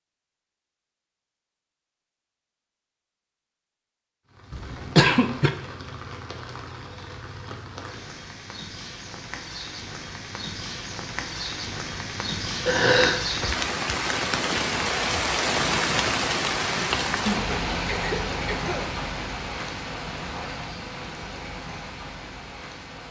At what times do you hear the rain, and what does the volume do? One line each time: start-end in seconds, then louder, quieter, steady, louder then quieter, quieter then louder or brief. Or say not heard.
4.2-23.0 louder then quieter.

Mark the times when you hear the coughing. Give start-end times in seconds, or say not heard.
4.5-5.5, 12.7-13.2, 17.9-19.0.